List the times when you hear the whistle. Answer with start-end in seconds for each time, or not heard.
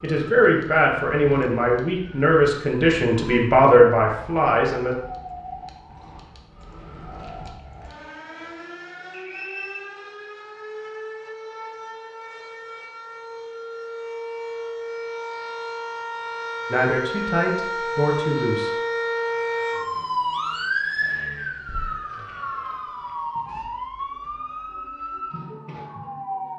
9.1-9.8.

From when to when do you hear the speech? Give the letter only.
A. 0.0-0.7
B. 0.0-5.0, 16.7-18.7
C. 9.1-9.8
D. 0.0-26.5
B.